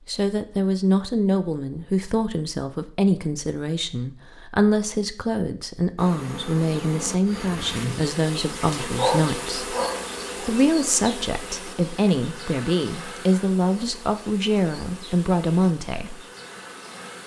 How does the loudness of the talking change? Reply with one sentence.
The loudness of the talking stays about the same.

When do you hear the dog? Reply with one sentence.
You can hear the dog from 8.9 to 10.5 s.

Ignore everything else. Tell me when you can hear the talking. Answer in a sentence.
You can hear the talking from 0.1 to 9.8 s and from 10.4 to 16.2 s.